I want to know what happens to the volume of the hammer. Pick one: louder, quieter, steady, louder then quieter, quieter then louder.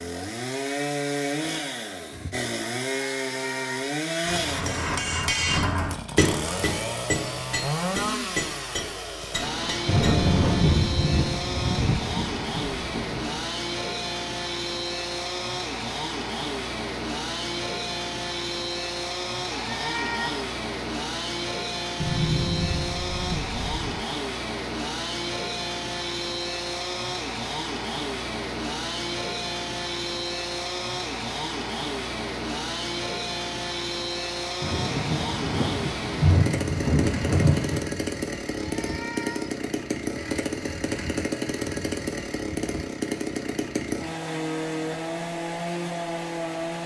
quieter.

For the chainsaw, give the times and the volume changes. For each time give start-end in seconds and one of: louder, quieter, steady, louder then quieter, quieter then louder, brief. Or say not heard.
0.0-46.8 steady.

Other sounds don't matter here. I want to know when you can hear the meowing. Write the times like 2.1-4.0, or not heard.
3.0-4.0, 19.5-20.5, 38.5-39.6.